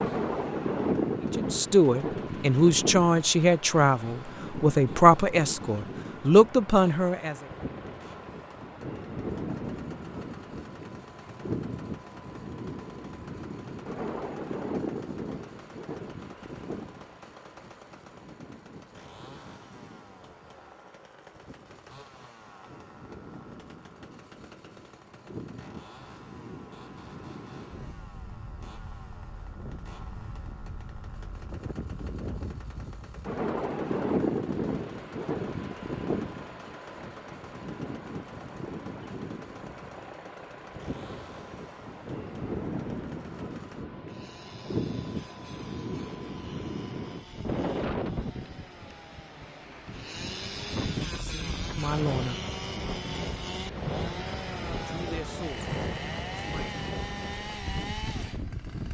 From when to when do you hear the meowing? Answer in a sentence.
The meowing can't be heard in this clip.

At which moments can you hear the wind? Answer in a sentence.
You can hear the wind from 0.0 to 58.8 s.